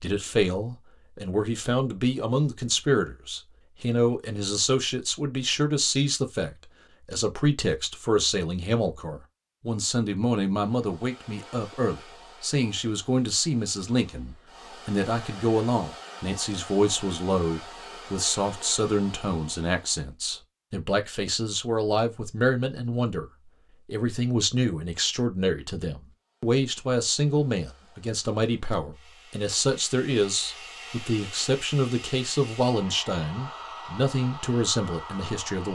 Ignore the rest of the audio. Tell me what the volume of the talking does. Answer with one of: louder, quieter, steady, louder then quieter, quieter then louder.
steady.